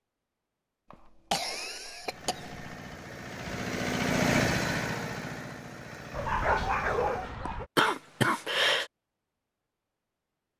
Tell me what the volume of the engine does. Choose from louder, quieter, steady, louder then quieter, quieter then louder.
louder then quieter.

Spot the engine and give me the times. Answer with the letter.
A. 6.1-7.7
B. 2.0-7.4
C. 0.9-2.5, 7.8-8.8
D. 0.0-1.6
B.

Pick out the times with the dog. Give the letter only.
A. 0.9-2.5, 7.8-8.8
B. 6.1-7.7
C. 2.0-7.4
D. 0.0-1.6
B.